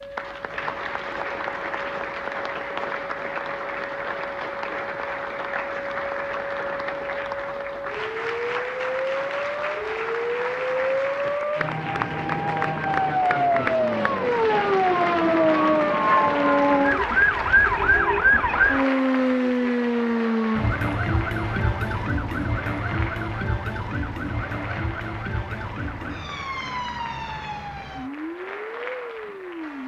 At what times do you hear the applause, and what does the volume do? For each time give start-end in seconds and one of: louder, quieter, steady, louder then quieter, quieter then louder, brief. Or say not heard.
0.0-29.8 quieter.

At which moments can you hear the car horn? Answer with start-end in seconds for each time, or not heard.
not heard.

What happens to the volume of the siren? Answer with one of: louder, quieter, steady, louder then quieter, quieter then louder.
louder then quieter.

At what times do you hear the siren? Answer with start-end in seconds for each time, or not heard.
0.0-29.8.